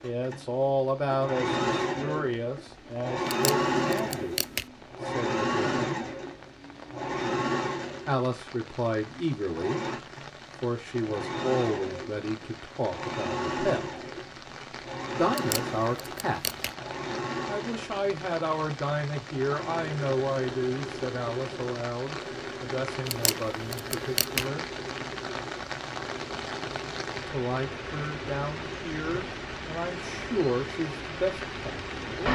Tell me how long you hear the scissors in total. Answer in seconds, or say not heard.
4 s.